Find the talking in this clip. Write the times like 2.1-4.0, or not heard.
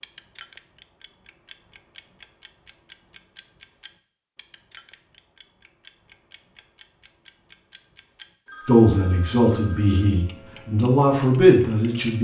8.7-12.1.